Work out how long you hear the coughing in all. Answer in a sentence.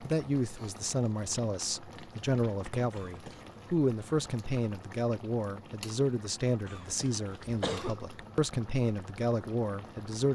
You can hear the coughing for 2 seconds altogether.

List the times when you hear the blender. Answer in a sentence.
The blender can't be heard in this clip.